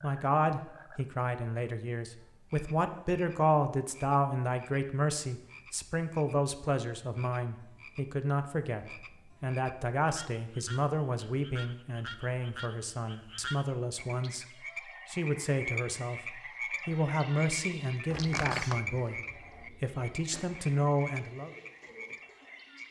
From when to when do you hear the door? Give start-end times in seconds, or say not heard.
18.1-19.2.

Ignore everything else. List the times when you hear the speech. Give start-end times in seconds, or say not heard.
0.0-14.4, 15.1-21.5.